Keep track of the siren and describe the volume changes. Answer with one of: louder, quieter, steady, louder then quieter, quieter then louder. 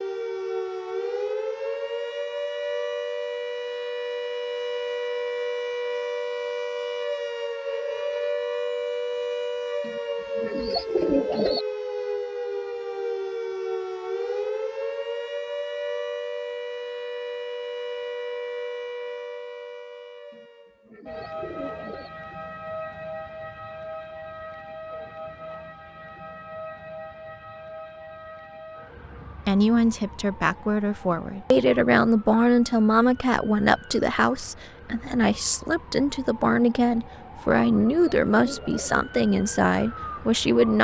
quieter.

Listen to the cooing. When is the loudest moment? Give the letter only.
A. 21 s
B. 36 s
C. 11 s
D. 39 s
C.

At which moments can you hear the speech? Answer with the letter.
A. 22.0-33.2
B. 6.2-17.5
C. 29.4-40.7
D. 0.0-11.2
C.